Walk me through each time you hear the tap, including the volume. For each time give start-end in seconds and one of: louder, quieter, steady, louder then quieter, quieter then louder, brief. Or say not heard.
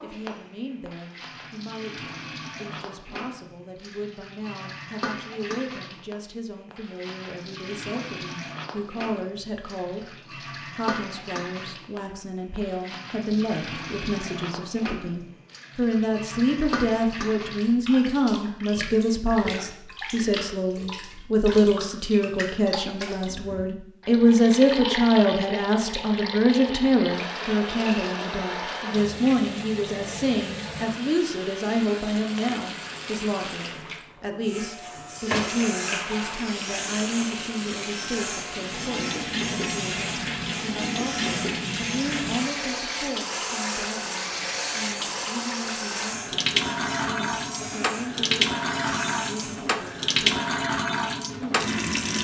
0.0-52.1 louder.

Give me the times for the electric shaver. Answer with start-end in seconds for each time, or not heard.
34.4-49.9.